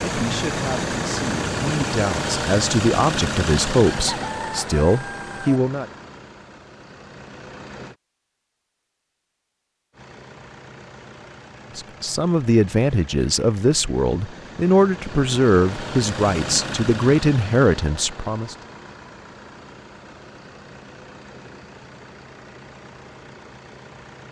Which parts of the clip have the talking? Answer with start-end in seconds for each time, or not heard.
0.0-5.8, 11.8-18.6.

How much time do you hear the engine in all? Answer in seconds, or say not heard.
22 s.